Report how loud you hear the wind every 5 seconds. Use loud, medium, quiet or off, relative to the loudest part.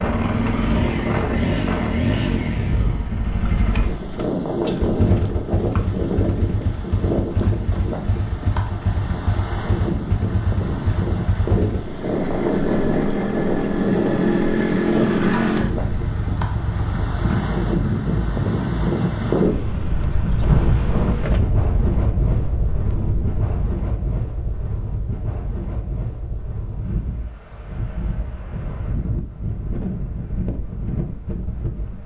loud, loud, loud, loud, loud, medium, medium.